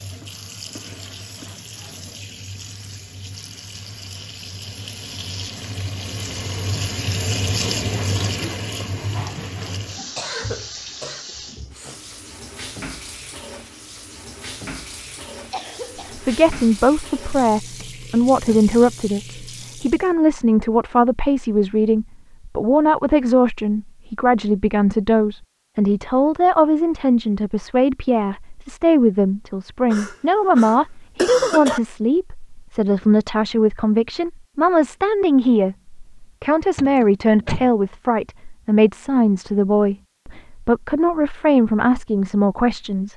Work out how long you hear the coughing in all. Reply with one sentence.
You can hear the coughing for 5 seconds altogether.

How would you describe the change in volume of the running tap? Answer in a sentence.
The volume of the running tap goes up, then down.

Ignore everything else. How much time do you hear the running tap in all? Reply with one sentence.
You can hear the running tap for 20 seconds altogether.